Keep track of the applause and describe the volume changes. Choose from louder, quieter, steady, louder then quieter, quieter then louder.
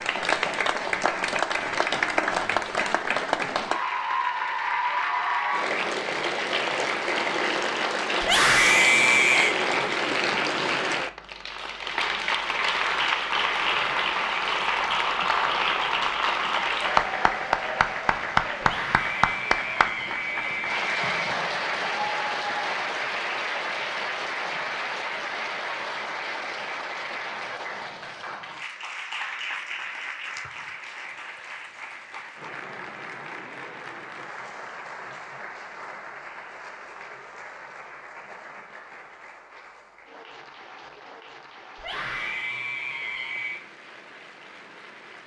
quieter.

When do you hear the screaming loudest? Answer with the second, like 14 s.
9 s.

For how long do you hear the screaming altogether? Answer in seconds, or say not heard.
6 s.